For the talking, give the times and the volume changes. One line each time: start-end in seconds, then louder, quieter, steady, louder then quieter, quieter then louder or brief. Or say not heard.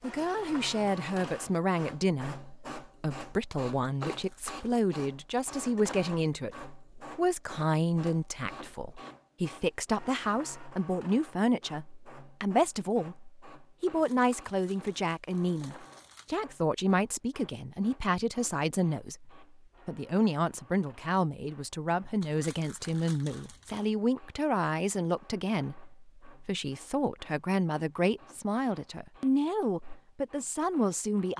0.0-31.3 steady.